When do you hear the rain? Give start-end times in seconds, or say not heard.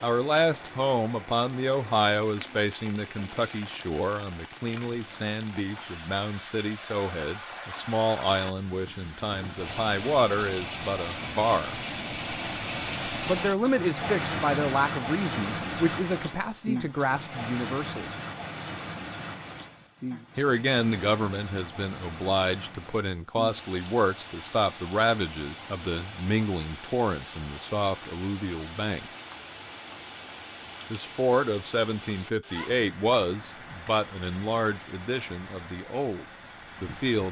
0.0-37.2.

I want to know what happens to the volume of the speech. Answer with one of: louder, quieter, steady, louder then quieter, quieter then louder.
steady.